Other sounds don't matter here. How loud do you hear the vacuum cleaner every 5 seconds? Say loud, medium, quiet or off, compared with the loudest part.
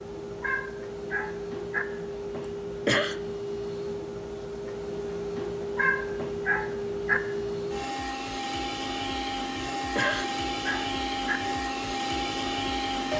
medium, loud, loud.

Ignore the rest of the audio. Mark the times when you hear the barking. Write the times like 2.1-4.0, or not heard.
0.4-1.9, 5.8-7.2, 9.9-11.4.